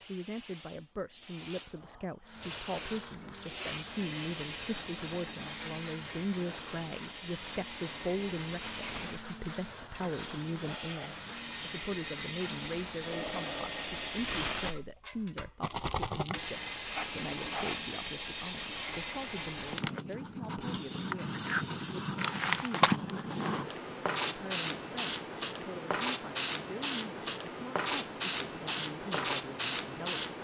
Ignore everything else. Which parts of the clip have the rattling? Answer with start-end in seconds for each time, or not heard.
15.6-16.4.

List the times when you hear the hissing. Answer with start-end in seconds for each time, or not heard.
0.0-30.4.